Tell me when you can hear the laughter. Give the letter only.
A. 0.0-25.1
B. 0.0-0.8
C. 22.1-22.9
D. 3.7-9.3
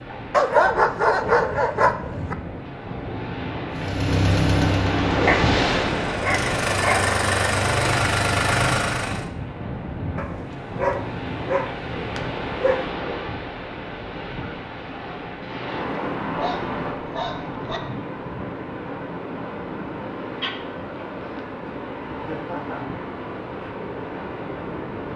C.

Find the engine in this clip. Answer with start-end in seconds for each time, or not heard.
3.7-9.3.